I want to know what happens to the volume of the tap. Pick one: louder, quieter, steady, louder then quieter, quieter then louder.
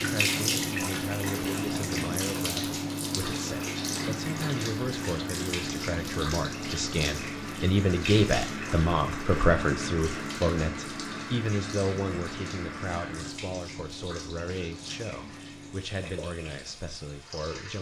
quieter.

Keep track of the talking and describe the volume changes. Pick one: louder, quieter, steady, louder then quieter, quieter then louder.
louder then quieter.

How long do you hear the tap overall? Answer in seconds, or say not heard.
18 s.